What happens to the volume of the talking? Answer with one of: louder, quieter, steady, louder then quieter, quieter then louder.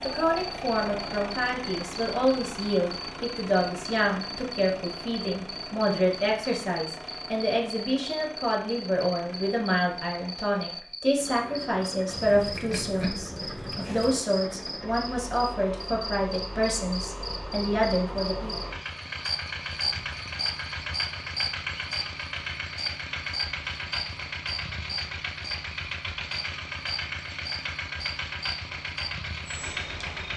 steady.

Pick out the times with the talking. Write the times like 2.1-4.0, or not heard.
0.0-18.6.